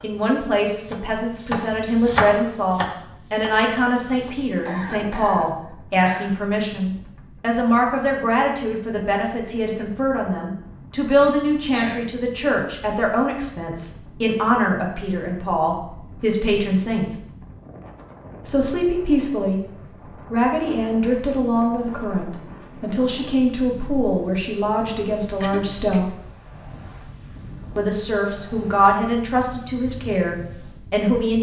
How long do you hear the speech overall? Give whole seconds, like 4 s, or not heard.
28 s.